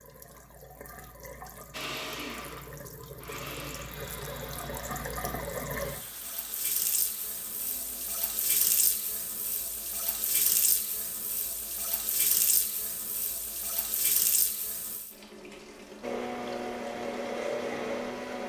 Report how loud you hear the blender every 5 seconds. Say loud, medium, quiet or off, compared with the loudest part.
medium, quiet, off, loud.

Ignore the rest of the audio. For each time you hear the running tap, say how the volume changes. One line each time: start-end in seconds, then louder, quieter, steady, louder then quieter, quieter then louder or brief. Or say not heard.
0.0-18.4 louder then quieter.